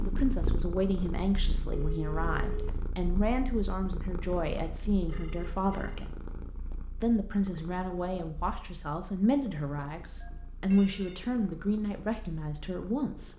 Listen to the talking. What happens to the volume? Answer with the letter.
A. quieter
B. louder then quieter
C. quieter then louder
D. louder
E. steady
E.